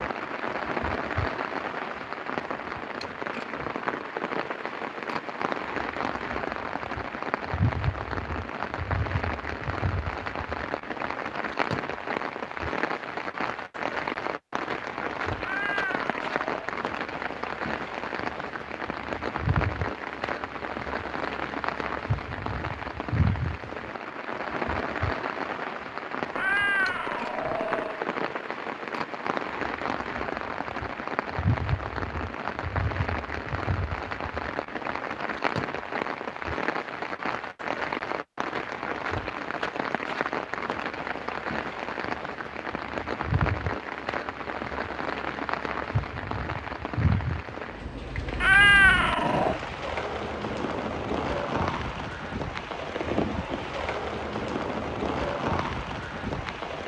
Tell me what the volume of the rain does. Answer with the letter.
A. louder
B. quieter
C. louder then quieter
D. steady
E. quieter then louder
D.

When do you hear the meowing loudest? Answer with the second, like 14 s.
49 s.